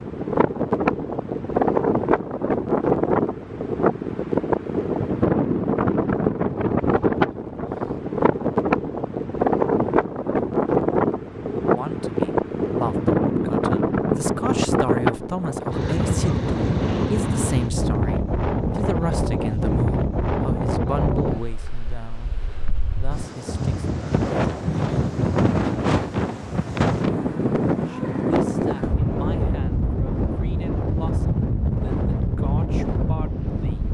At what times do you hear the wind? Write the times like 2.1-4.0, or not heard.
0.0-33.8.